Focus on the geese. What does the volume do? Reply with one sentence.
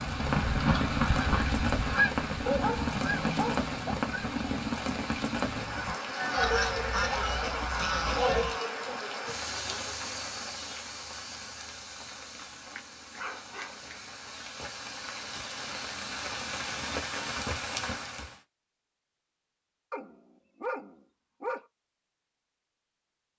The volume of the geese goes down, then up.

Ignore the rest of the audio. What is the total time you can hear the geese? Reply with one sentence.
The geese can be heard for 9 seconds in total.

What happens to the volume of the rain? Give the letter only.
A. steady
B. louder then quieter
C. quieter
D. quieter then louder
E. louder
D.